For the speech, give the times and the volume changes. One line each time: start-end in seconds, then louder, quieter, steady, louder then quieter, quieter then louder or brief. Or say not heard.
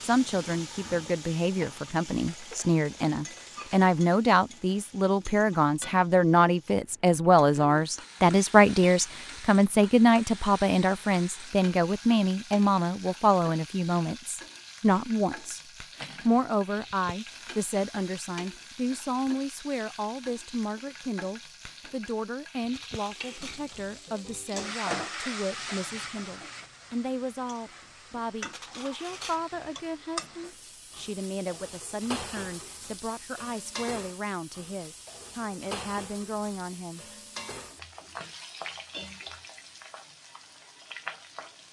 0.0-37.0 quieter.